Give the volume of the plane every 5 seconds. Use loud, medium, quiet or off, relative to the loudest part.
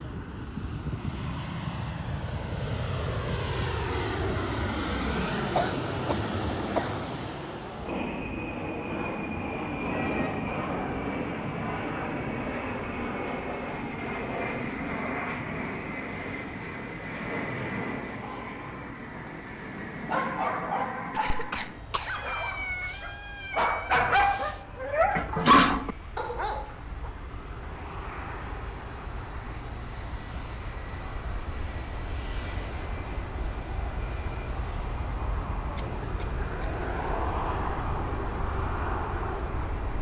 loud, loud, loud, loud, medium, medium, medium, loud.